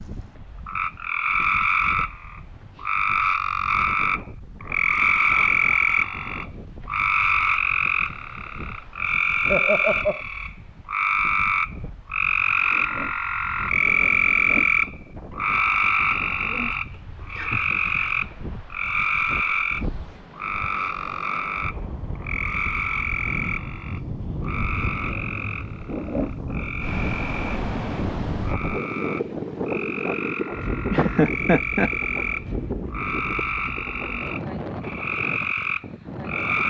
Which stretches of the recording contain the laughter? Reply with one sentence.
You can hear the laughter from 9.4 to 10.2 s, from 16.9 to 18.0 s and from 30.9 to 31.9 s.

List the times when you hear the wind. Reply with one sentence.
You can hear the wind from 0.0 to 36.6 s.